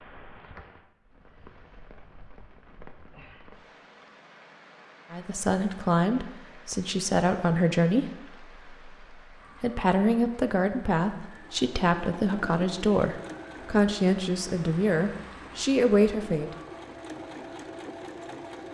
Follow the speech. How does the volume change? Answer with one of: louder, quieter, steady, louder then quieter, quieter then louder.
steady.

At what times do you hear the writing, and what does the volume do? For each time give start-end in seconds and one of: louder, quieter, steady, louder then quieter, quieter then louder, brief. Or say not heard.
not heard.